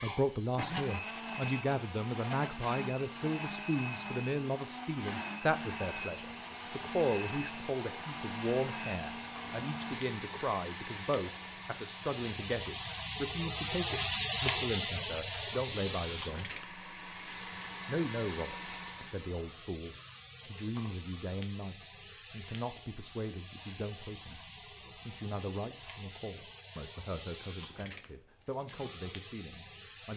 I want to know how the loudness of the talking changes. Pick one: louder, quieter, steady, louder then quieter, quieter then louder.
quieter.